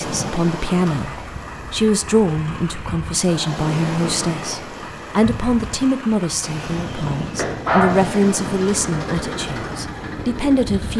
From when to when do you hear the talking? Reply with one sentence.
The talking can be heard from 0.0 to 10.9 s.